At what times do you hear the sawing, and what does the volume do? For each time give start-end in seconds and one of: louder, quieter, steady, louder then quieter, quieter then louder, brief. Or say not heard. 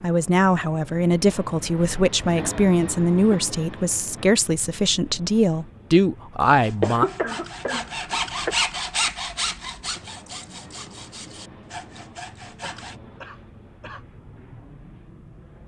6.5-12.9 louder then quieter.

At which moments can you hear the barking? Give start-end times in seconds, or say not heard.
not heard.